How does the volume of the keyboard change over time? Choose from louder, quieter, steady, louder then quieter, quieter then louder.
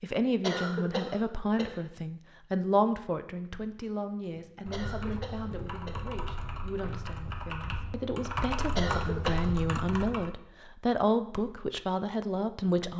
louder.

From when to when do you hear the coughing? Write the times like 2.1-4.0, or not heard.
0.4-1.8, 4.7-5.9, 8.8-9.6.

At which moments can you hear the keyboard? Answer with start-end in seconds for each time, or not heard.
4.3-10.3.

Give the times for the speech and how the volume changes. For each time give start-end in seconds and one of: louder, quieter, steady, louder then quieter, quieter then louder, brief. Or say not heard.
0.0-12.9 quieter then louder.